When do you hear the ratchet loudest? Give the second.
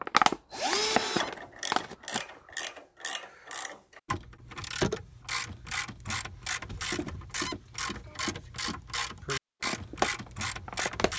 5 s.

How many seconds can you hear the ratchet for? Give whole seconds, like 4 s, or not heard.
10 s.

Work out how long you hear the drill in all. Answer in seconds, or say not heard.
4 s.